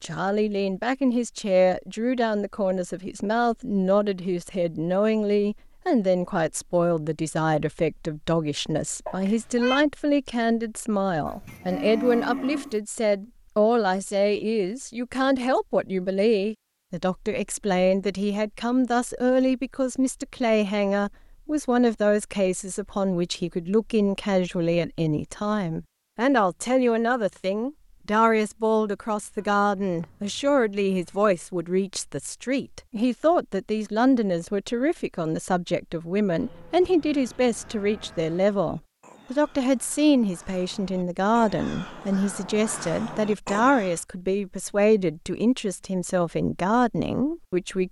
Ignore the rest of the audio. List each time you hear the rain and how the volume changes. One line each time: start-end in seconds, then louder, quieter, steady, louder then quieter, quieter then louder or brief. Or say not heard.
not heard.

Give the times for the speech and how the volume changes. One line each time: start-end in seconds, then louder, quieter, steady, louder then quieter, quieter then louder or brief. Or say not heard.
0.0-47.8 steady.